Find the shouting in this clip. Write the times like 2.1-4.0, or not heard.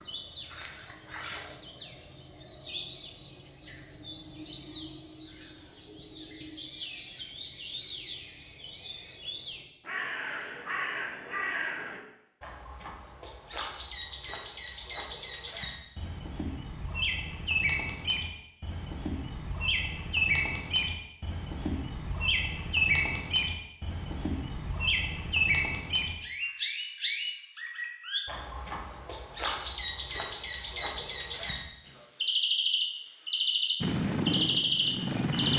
not heard.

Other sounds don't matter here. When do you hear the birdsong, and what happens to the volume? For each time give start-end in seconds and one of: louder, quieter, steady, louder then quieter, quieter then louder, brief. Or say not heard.
0.0-35.5 louder.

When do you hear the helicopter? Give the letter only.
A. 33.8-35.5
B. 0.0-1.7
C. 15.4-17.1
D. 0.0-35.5
A.